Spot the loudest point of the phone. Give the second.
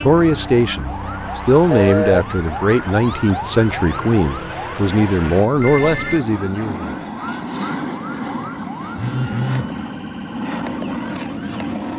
2 s.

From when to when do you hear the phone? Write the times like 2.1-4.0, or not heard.
1.7-2.2, 5.5-6.2, 8.9-9.7.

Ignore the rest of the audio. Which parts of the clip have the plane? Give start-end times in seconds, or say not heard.
0.0-11.9.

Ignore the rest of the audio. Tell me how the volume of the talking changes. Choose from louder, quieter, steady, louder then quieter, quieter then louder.
steady.